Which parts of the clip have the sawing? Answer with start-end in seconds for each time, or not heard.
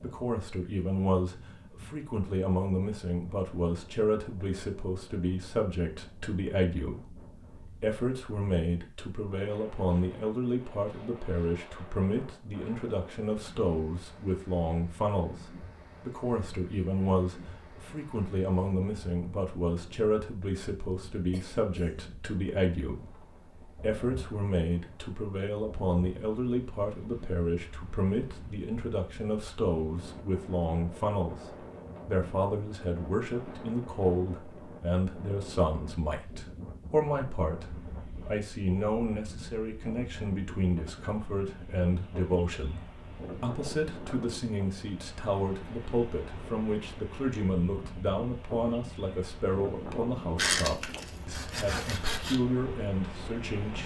50.4-52.4.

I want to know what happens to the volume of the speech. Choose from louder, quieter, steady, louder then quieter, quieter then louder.
steady.